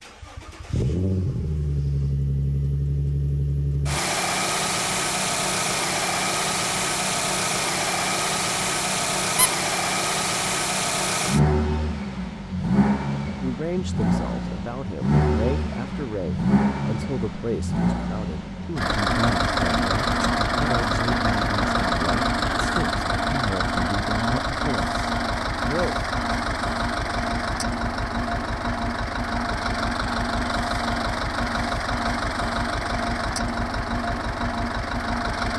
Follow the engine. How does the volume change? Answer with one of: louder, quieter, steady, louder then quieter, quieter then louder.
steady.